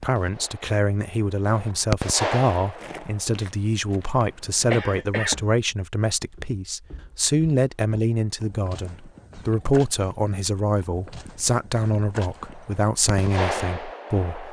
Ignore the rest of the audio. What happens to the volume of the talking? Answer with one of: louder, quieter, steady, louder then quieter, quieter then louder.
steady.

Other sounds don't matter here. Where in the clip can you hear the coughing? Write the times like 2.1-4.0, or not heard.
4.7-5.5.